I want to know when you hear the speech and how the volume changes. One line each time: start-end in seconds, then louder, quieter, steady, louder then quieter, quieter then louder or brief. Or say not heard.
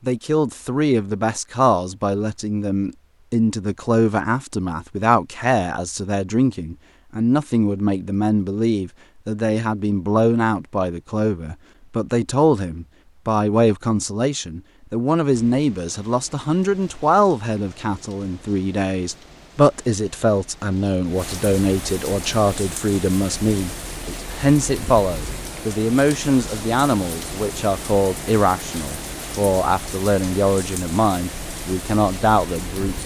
0.0-33.0 steady.